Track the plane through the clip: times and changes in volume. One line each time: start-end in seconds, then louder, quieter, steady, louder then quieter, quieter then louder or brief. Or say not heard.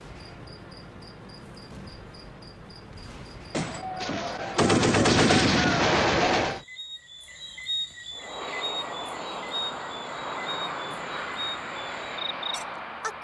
8.1-13.1 steady.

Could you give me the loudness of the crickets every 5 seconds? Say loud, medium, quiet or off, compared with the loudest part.
medium, loud, loud.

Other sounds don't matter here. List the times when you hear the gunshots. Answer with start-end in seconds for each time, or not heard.
3.5-6.6.